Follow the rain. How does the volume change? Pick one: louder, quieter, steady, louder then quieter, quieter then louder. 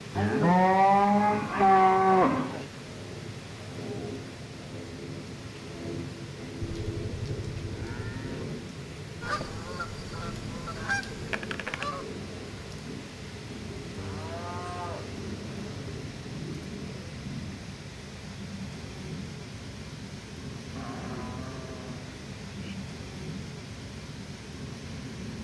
steady.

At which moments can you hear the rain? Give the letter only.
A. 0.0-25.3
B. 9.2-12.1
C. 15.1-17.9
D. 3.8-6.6
A.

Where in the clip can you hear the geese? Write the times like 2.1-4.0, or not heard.
9.2-12.1.